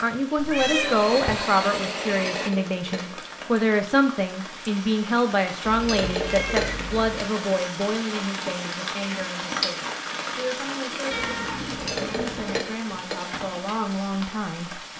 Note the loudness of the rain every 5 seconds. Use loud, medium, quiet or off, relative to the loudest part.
medium, loud, loud.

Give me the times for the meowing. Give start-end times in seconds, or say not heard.
0.3-1.5, 5.7-7.2, 11.1-12.7.